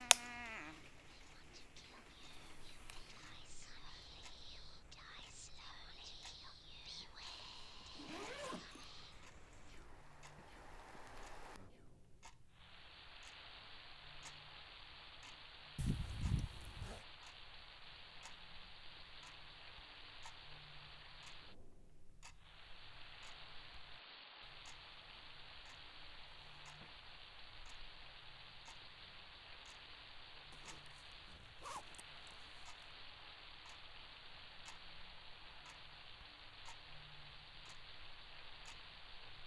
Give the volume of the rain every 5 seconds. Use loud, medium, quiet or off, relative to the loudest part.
loud, medium, loud, loud, loud, loud, loud, loud.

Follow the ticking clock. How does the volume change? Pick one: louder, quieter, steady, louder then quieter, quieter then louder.
quieter.